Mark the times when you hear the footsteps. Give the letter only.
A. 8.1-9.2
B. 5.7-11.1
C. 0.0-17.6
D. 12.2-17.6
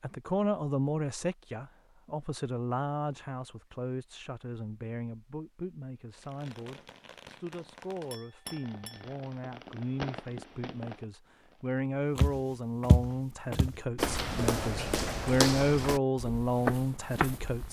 D.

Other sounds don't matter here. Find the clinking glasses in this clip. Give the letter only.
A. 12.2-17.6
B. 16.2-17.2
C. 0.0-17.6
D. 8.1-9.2
D.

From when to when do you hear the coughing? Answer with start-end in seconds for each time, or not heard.
not heard.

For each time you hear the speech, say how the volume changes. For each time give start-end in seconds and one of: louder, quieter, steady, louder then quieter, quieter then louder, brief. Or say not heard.
0.0-17.6 quieter then louder.